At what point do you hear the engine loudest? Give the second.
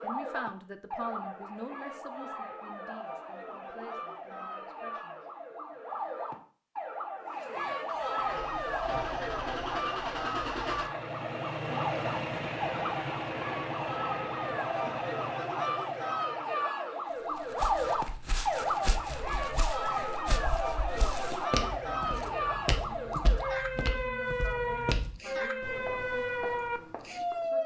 12 s.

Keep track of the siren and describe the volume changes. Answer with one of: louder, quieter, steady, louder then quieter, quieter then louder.
louder.